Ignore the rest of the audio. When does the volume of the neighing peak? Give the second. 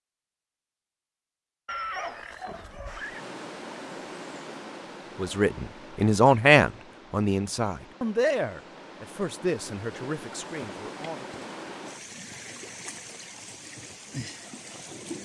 2 s.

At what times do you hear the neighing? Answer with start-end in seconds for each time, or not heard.
1.6-3.2.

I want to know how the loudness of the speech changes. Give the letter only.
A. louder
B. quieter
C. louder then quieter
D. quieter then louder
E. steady
B.